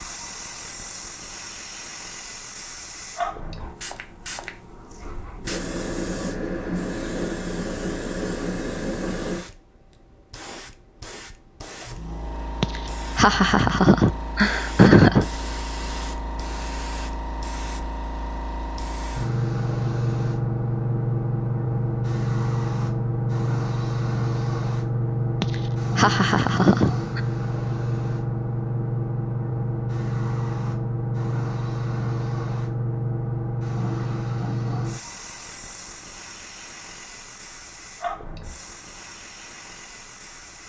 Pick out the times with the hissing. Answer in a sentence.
You can hear the hissing from 0.0 to 40.6 s.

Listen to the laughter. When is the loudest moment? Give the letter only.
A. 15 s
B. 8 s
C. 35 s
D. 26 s
A.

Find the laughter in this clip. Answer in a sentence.
The laughter can be heard from 12.6 to 15.2 s and from 25.4 to 27.2 s.